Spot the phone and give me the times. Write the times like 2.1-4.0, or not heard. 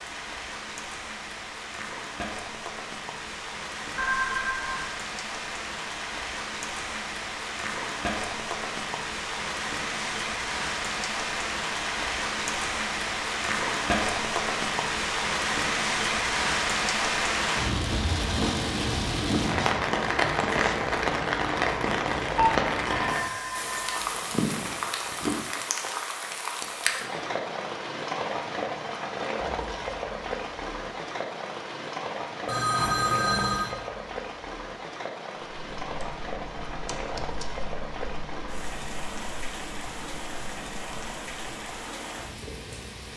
4.0-4.9, 22.3-24.0, 32.5-33.8.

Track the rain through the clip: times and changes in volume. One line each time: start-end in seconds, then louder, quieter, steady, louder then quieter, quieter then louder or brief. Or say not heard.
0.0-43.1 louder then quieter.